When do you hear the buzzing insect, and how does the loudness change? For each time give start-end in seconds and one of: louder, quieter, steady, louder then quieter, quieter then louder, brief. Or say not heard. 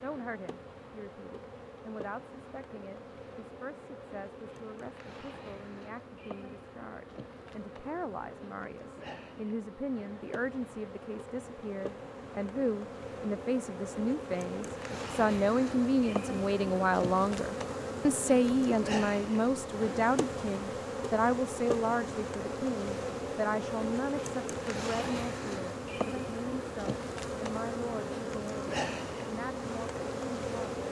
0.0-30.8 louder.